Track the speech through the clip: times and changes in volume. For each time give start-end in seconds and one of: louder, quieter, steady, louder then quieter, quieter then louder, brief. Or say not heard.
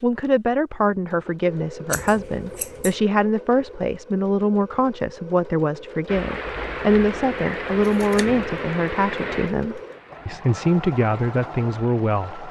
0.0-12.4 steady.